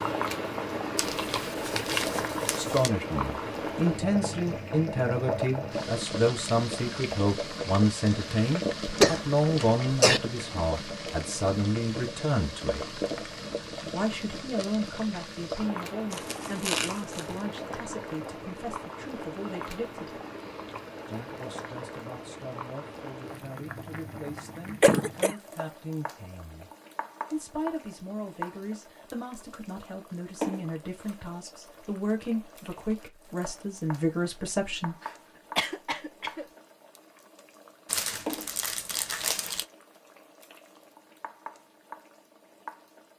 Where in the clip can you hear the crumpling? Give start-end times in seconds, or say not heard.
0.9-2.9, 16.1-17.4, 37.9-39.6.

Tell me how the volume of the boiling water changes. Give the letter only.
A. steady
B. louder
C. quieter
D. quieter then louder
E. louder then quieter
C.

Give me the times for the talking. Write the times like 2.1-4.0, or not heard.
2.5-12.9, 13.8-20.2, 21.1-26.7, 27.3-35.0.